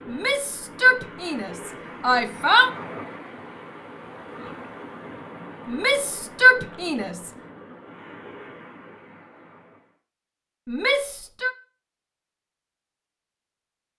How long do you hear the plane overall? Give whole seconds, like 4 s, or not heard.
not heard.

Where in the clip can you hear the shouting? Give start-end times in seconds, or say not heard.
0.1-2.7, 5.7-7.3, 10.7-11.6.